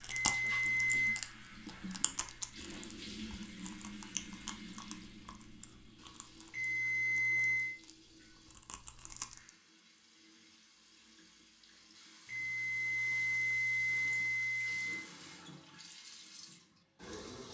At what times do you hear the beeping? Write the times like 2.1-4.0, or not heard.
0.1-1.2, 6.5-7.8, 12.2-15.1.